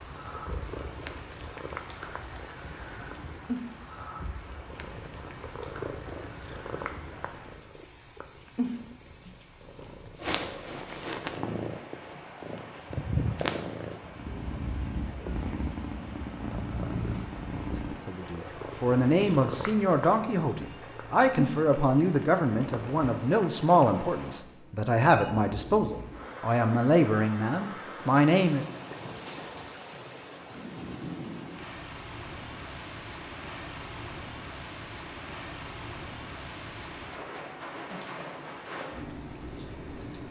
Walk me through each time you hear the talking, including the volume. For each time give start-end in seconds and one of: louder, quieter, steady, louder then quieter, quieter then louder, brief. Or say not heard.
18.1-28.6 steady.